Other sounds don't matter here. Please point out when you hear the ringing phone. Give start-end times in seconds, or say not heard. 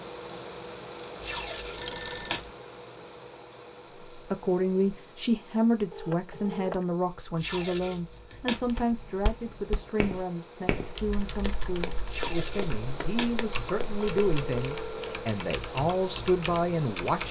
1.8-2.5, 5.9-6.8, 14.0-15.2.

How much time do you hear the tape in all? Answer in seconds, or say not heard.
4 s.